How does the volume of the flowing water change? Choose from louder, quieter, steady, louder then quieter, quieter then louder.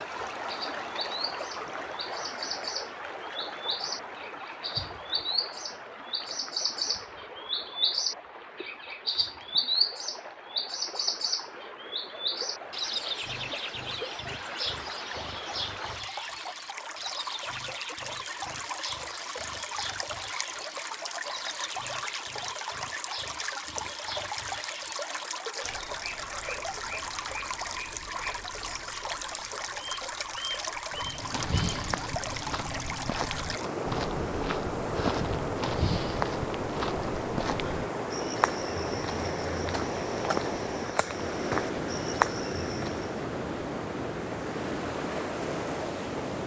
louder.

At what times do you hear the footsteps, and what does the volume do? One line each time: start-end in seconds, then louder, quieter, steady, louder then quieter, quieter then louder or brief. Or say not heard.
30.9-43.2 steady.